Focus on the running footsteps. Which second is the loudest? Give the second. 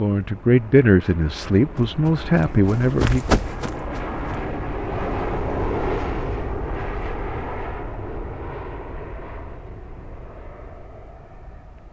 3 s.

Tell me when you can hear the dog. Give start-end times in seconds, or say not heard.
not heard.